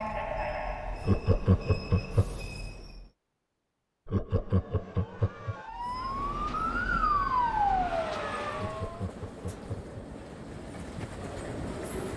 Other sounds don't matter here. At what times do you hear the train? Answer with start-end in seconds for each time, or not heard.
0.0-3.1, 5.7-12.1.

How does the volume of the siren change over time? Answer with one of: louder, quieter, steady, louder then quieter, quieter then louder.
louder then quieter.